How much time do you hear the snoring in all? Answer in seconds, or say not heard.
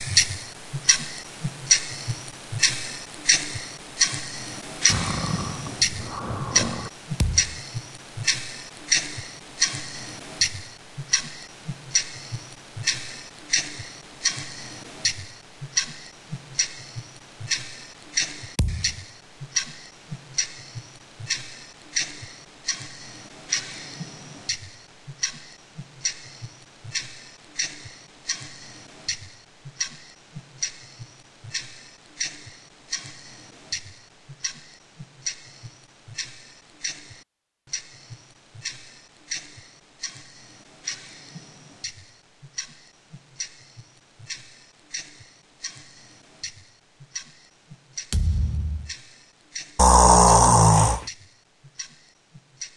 3 s.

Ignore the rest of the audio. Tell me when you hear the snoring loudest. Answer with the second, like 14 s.
50 s.